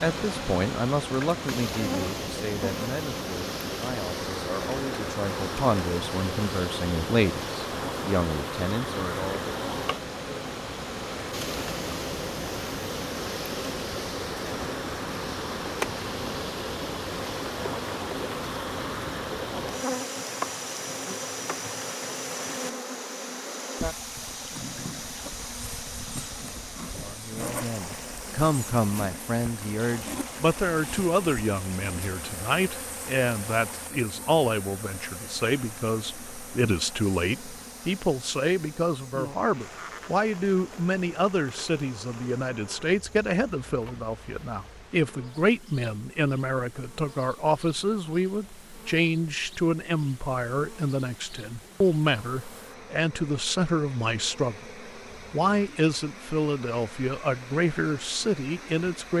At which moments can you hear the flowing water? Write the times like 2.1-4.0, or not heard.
0.0-59.1.